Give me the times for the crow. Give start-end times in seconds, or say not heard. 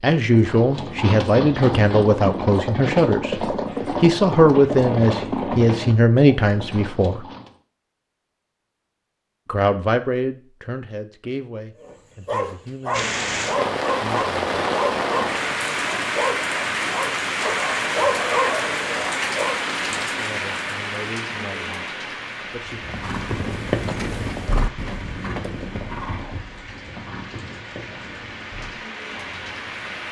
not heard.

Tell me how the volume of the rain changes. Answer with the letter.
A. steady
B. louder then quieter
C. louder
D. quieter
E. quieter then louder
D.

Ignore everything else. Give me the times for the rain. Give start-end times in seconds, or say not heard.
12.9-30.0.